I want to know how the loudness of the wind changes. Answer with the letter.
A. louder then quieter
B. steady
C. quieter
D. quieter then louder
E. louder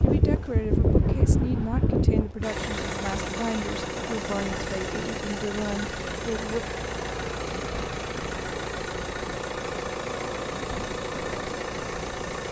C.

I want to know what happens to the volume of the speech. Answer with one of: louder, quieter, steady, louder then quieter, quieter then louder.
steady.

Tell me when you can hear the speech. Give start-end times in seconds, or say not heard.
0.0-6.6.